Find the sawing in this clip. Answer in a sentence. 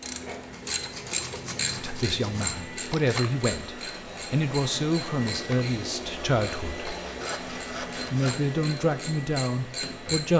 The sawing can be heard from 0.5 to 2.5 s and from 6.8 to 8.4 s.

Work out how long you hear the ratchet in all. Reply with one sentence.
The ratchet can be heard for 10 seconds in total.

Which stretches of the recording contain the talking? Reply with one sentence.
You can hear the talking from 1.8 to 6.9 s and from 8.0 to 10.3 s.